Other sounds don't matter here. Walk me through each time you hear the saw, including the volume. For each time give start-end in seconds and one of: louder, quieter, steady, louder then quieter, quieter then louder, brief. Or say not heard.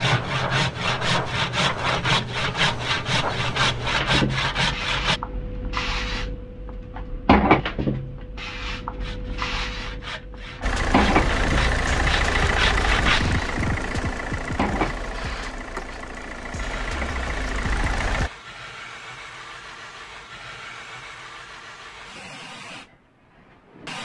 0.0-5.2 steady
8.9-13.2 louder.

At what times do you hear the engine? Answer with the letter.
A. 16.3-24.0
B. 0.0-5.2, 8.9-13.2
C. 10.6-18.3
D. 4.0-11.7
C.